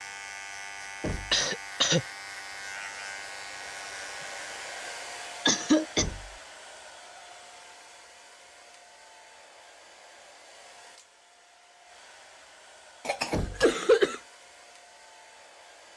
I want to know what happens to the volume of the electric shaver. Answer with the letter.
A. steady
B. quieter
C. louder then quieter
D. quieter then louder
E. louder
A.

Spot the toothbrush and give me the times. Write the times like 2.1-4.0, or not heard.
not heard.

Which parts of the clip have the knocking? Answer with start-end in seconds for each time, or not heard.
1.0-1.4, 6.0-6.4, 13.3-13.8.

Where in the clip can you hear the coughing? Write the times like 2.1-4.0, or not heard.
1.3-2.0, 5.5-6.0, 13.1-14.2.